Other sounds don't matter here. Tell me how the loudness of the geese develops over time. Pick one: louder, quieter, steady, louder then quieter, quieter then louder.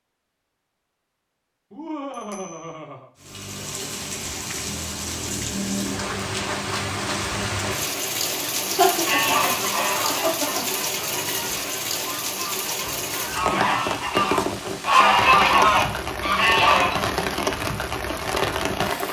quieter then louder.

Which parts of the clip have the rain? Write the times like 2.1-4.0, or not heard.
3.1-19.0.